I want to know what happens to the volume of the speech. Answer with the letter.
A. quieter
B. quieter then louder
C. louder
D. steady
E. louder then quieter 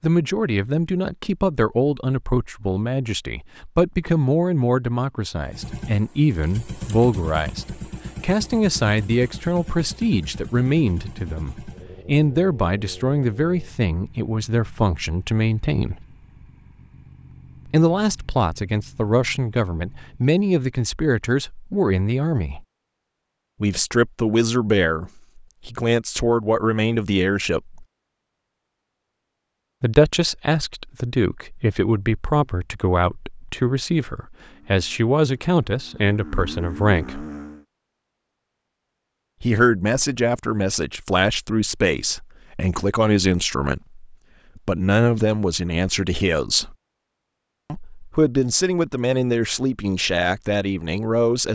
D.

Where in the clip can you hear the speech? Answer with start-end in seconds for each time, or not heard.
0.0-16.1, 17.6-22.6, 23.6-27.9, 29.8-37.2, 39.4-46.8, 47.7-51.5.